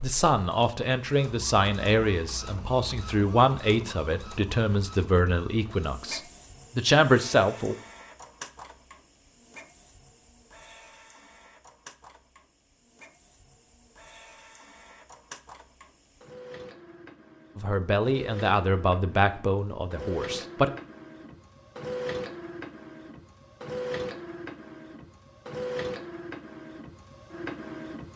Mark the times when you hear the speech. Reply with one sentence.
The speech can be heard from 0.0 to 7.8 s and from 17.6 to 20.7 s.